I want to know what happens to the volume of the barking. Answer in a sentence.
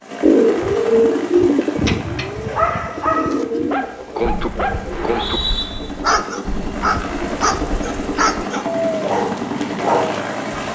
The loudness of the barking stays about the same.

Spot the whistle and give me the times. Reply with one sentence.
You can hear the whistle from 4.9 to 5.7 s.